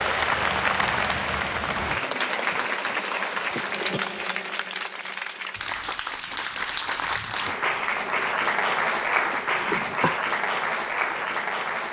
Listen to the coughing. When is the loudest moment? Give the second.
10 s.